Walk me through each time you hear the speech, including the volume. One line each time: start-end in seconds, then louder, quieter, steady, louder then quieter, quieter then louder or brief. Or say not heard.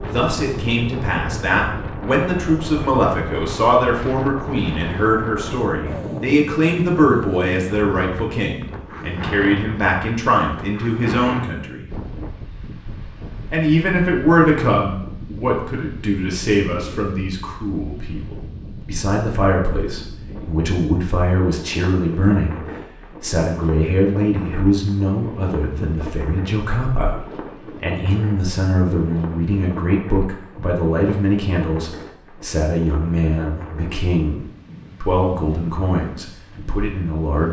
0.0-11.9 steady
13.5-22.6 quieter then louder
23.2-37.4 steady.